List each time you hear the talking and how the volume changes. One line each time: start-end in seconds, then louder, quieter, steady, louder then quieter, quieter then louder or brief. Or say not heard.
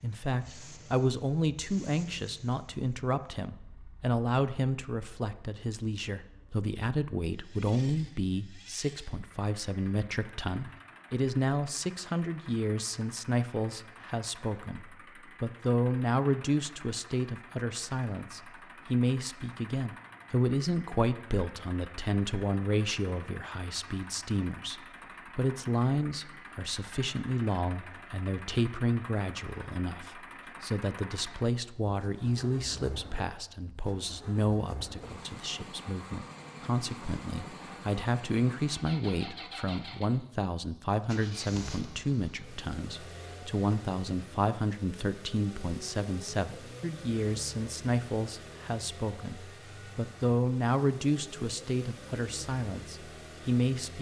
0.0-53.9 steady.